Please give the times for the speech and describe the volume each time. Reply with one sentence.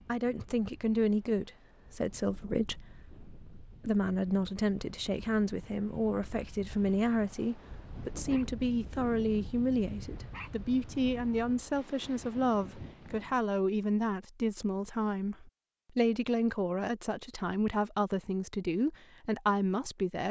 You can hear the speech from 0.1 to 20.2 s, at a steady volume.